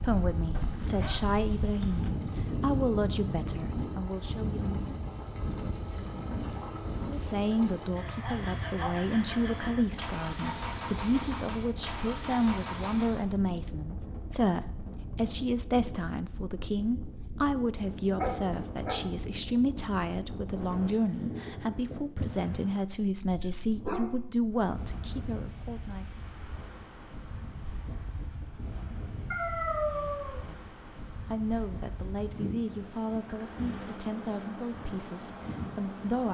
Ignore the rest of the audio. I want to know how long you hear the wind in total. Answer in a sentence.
You can hear the wind for 36 seconds altogether.